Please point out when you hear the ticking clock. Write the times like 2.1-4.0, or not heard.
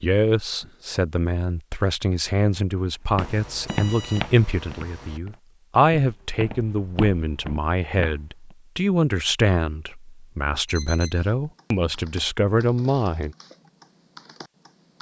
not heard.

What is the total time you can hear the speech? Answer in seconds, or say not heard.
13 s.